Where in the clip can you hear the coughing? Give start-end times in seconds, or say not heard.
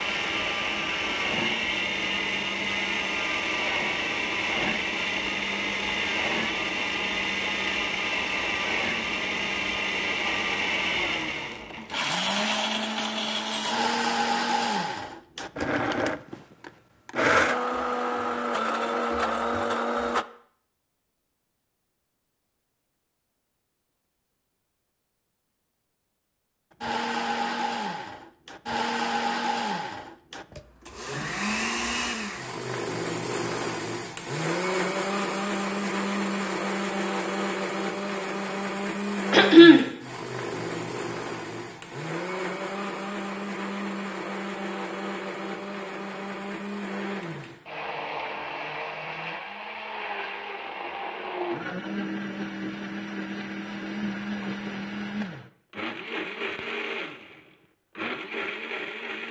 39.3-39.9.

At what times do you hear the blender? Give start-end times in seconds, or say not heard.
0.0-20.2, 26.8-59.2.